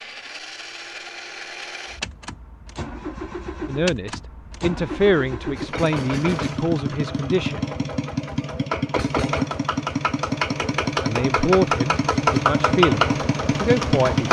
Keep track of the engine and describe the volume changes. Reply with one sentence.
The loudness of the engine goes up.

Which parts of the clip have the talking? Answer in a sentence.
The talking can be heard from 3.6 to 7.6 s and from 11.0 to 14.2 s.